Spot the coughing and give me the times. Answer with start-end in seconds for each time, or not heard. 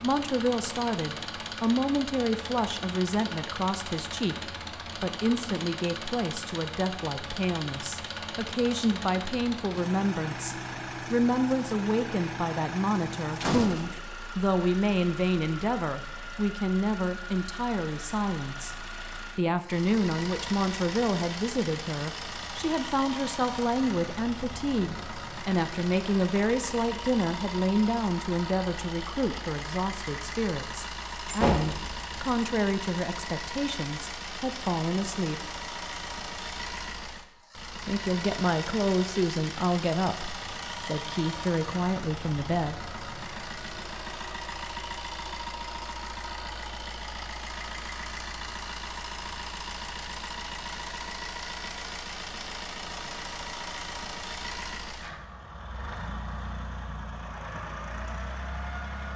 not heard.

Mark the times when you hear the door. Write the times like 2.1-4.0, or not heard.
13.4-14.0, 31.2-32.2.